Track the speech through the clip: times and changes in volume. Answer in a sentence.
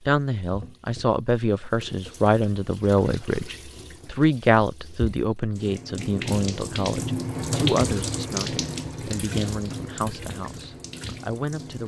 You can hear the speech from 0.1 to 11.8 s, getting quieter.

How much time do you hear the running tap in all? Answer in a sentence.
The running tap can be heard for 12 seconds in total.